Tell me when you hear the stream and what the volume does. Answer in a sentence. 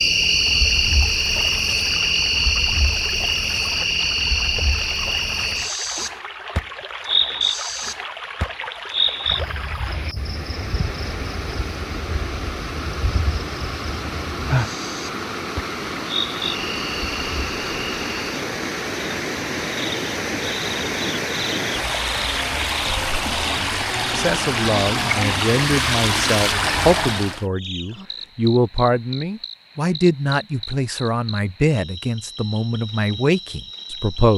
The stream can be heard from 0.0 to 27.4 s, getting louder.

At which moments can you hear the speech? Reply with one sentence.
The speech can be heard from 24.1 to 34.3 s.